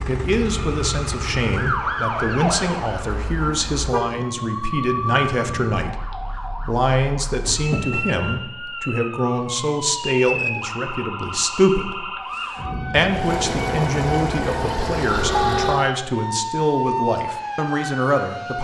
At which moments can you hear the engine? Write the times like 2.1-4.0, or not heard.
0.0-1.9, 13.1-15.9.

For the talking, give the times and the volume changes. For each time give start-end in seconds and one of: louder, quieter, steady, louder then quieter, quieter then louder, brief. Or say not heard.
0.1-18.5 steady.